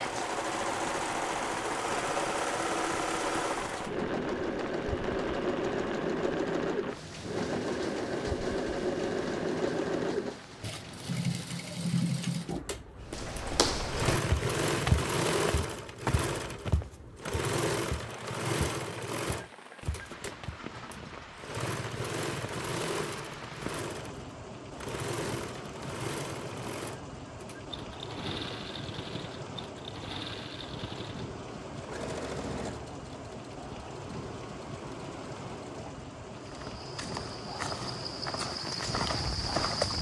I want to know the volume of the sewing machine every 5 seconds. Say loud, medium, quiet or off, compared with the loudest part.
loud, loud, loud, loud, medium, medium, medium, quiet.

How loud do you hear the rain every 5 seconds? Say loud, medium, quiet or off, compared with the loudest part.
loud, loud, medium, medium, loud, loud, loud, loud.